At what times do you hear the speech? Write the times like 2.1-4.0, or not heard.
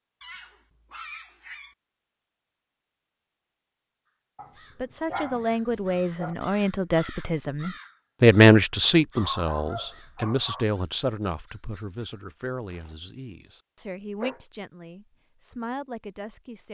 4.8-16.6.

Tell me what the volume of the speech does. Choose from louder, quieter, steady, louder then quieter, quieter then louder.
louder then quieter.